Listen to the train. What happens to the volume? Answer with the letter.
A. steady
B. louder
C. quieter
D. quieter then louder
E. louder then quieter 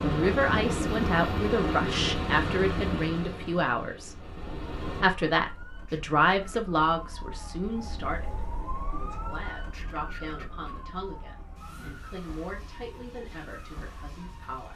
C.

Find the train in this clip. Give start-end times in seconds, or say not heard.
0.0-5.0.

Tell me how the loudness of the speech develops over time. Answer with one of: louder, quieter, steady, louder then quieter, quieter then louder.
quieter.